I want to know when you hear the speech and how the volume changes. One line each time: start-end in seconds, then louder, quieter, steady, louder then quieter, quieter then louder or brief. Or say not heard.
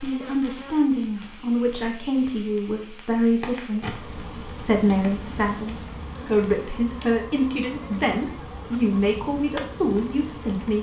0.0-10.7 steady.